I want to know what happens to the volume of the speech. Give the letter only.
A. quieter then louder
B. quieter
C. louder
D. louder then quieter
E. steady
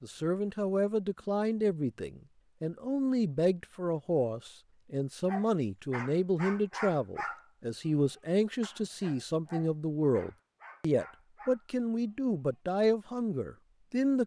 E.